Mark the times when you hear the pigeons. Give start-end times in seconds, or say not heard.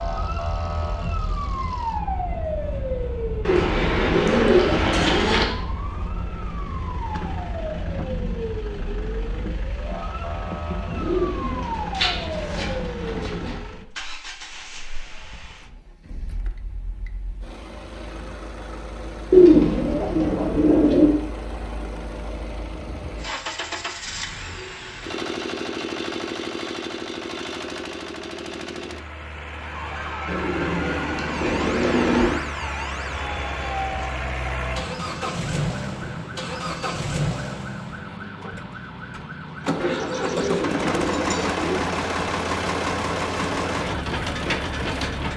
3.5-5.5, 10.9-13.6, 19.3-21.1, 30.2-32.4, 39.8-41.8.